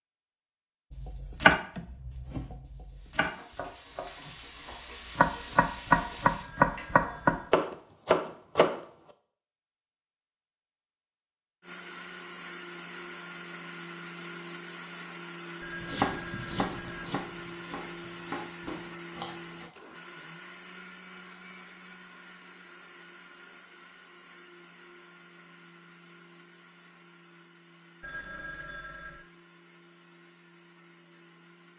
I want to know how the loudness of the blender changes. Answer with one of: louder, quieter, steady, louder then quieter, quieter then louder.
quieter.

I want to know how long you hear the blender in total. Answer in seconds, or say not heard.
20 s.